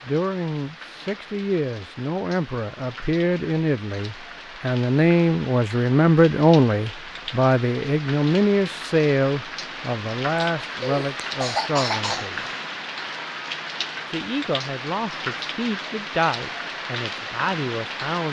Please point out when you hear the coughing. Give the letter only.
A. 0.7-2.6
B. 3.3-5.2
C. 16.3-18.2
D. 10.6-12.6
D.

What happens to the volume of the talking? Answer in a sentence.
The loudness of the talking goes up, then down.